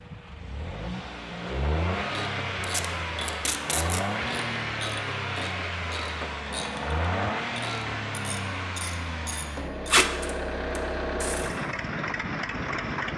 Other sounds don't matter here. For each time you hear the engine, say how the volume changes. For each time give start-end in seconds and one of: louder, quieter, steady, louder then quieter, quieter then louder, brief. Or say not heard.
0.0-13.1 steady.